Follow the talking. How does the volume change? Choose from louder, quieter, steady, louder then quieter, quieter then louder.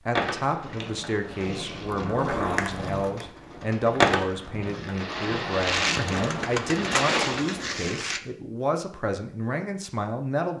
steady.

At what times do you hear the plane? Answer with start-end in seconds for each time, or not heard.
4.9-7.3.